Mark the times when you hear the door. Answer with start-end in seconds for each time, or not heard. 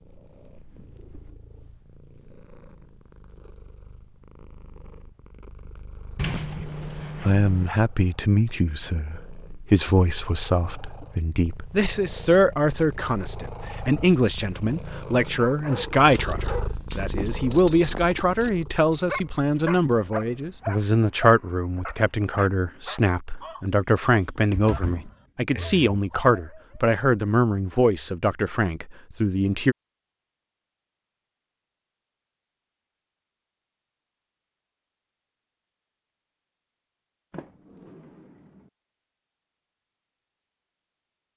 6.2-7.7, 24.4-25.9, 37.3-38.7.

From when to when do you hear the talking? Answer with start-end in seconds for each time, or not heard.
6.5-29.8.